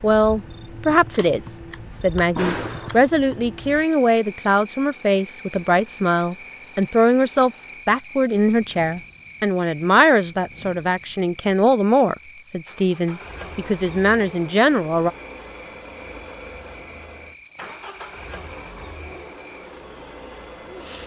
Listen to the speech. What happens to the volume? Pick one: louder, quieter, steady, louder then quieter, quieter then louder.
steady.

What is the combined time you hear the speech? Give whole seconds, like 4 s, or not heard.
15 s.